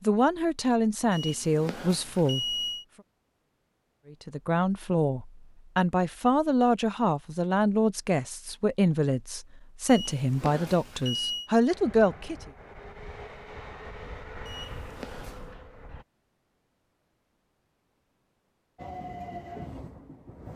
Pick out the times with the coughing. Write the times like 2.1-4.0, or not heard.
not heard.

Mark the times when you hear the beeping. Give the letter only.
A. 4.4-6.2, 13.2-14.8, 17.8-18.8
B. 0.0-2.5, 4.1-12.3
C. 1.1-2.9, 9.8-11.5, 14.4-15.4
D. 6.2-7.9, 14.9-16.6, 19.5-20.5
C.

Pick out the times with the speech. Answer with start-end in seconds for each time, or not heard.
0.0-2.5, 4.1-12.3.